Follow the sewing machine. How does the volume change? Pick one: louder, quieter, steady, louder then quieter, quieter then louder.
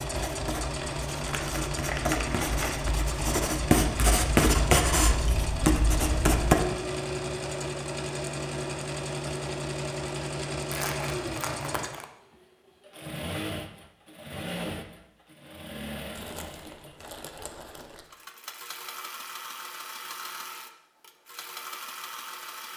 quieter.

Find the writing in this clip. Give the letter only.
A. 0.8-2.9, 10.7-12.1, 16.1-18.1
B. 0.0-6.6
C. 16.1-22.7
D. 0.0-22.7
B.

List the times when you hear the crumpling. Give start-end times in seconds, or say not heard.
0.8-2.9, 10.7-12.1, 16.1-18.1.